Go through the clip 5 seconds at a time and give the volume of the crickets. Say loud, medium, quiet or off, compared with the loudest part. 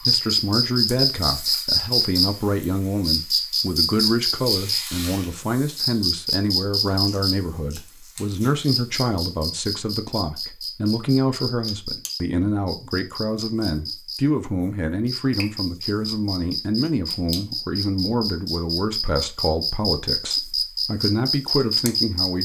loud, medium, medium, medium, loud.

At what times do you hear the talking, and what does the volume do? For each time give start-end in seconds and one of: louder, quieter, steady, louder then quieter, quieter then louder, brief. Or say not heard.
0.0-22.4 steady.